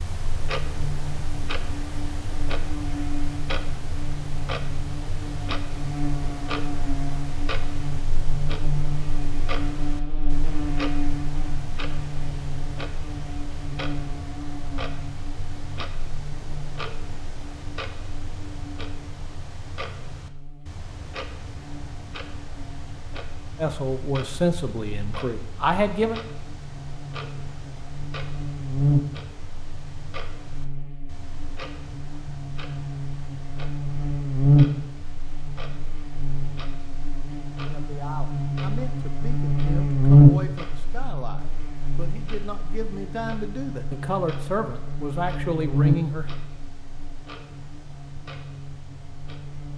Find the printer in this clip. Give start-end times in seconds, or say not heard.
not heard.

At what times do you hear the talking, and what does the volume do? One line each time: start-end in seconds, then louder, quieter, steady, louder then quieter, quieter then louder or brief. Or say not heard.
23.6-26.2 brief
37.6-46.4 louder.